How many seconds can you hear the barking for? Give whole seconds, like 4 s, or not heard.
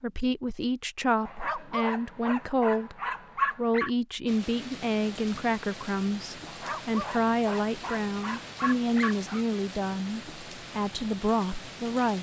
6 s.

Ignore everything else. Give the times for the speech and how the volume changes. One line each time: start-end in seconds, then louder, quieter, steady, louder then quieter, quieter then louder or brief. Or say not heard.
0.0-3.0 brief
3.5-12.1 steady.